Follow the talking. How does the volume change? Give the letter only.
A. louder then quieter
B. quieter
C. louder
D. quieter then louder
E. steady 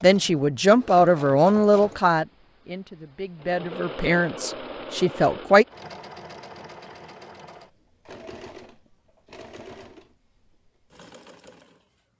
D.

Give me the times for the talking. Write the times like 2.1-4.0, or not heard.
0.0-5.7.